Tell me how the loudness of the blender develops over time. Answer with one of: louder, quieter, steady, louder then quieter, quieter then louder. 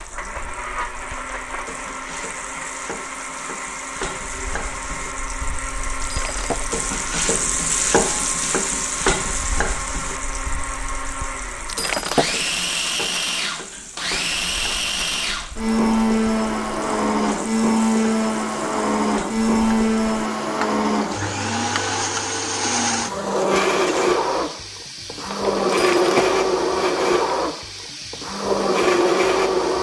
louder.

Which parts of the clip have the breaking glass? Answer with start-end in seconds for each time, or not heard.
6.0-6.7, 11.7-12.3, 25.7-26.4.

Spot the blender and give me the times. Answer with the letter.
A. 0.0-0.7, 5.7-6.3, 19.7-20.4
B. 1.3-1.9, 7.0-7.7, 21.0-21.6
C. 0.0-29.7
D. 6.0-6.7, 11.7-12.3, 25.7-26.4
C.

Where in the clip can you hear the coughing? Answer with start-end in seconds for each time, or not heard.
not heard.